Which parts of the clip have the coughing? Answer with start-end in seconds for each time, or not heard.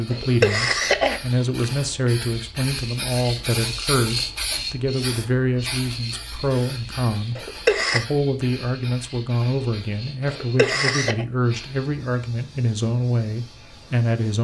0.1-1.6, 7.3-8.1, 10.2-11.2.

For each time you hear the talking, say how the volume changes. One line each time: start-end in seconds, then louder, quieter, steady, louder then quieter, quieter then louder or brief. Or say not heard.
0.0-14.3 steady.